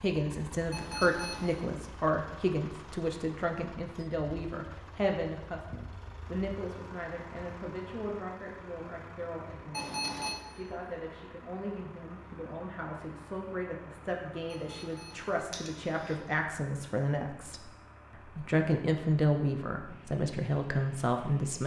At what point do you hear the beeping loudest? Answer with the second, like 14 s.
10 s.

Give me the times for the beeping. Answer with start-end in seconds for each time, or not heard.
0.7-1.6, 9.7-10.3, 14.5-16.1.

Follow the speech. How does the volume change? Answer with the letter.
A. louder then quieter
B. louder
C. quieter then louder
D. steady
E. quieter
C.